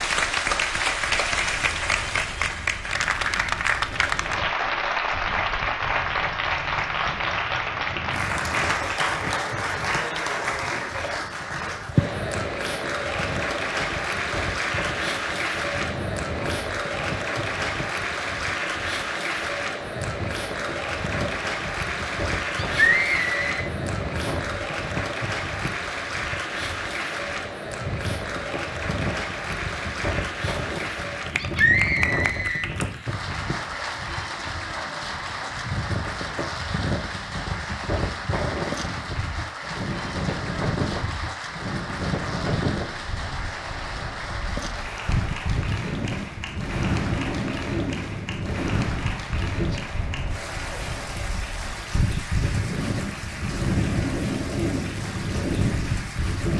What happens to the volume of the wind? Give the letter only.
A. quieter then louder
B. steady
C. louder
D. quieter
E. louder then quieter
C.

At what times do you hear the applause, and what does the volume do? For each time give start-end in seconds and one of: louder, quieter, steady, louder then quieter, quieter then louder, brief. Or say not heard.
0.0-56.5 quieter.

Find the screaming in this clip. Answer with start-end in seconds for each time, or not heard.
22.6-23.6, 31.4-32.6.